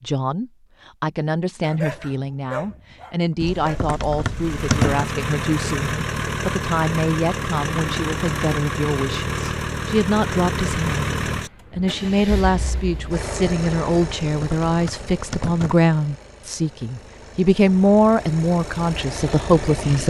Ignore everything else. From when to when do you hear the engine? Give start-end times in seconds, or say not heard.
4.3-20.0.